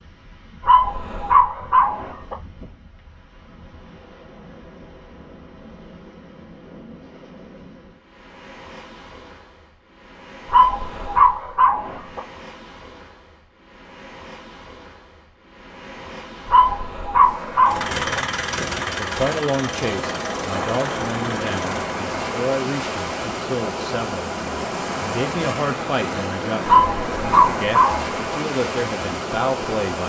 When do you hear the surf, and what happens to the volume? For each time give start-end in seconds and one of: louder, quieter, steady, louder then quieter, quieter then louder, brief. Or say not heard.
0.0-30.0 louder.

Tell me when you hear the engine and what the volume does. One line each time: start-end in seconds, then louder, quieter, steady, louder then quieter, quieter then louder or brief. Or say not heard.
17.6-21.9 quieter.